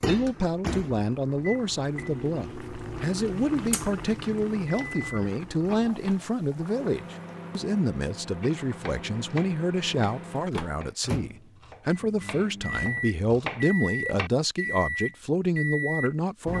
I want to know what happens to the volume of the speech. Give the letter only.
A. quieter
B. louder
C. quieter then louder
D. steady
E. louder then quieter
D.